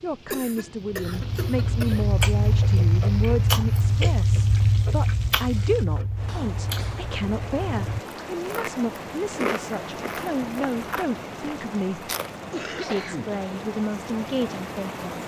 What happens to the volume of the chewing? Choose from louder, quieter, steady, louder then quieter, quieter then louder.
quieter.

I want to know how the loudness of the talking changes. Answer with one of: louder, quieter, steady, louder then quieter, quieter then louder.
steady.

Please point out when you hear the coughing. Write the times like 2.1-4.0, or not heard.
0.3-2.1, 6.2-7.1, 12.5-13.3.